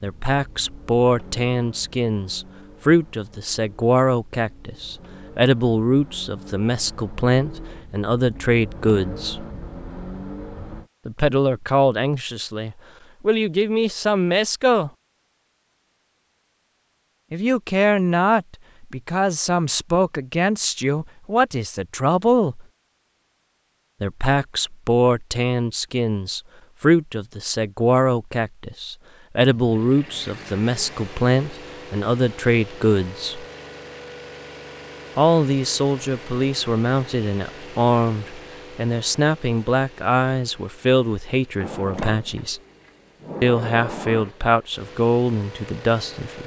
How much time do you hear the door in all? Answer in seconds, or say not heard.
3 s.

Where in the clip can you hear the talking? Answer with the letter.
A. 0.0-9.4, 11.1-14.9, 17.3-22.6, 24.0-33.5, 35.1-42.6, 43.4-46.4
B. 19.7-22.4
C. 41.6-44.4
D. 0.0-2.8
A.